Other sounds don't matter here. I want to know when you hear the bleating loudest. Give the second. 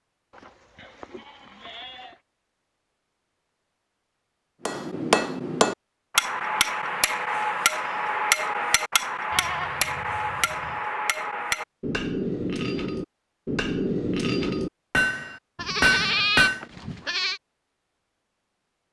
16 s.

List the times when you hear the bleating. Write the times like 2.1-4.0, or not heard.
0.3-2.2, 9.3-10.8, 15.6-17.4.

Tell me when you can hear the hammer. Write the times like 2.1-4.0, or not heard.
4.7-16.6.